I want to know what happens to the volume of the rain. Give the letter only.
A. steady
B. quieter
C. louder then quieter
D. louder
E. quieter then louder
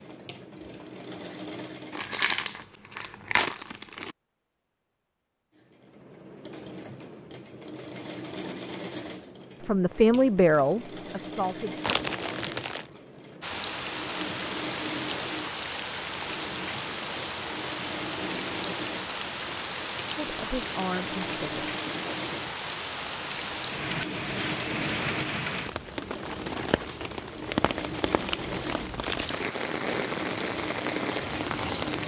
A.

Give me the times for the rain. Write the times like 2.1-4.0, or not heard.
13.4-32.0.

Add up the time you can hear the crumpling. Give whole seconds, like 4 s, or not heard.
5 s.